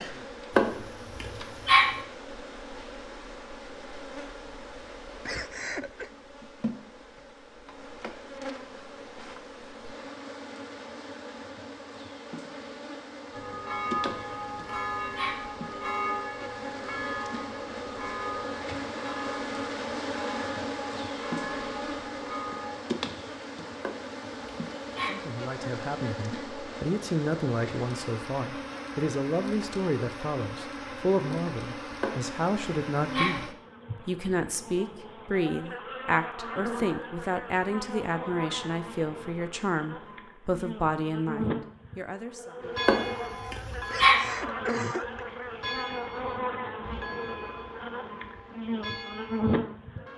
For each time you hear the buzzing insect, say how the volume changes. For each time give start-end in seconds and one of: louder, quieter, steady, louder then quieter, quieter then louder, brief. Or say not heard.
0.0-50.1 louder.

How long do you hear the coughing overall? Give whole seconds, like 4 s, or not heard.
2 s.